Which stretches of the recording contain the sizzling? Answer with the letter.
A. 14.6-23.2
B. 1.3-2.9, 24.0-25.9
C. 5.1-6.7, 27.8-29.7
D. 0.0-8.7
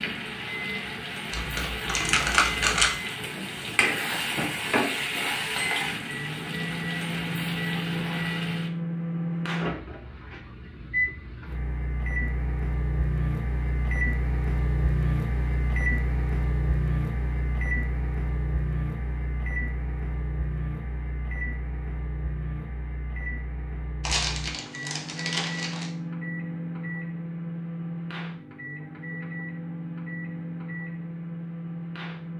D.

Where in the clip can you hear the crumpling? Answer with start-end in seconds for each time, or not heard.
1.3-2.9, 24.0-25.9.